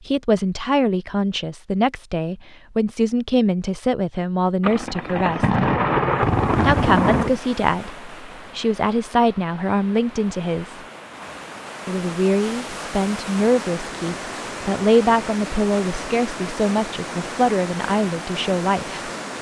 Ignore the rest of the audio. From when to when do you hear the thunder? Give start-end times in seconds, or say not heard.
4.6-7.4.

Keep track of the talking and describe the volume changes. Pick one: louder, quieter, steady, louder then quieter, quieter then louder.
steady.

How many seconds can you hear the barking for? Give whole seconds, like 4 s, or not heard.
not heard.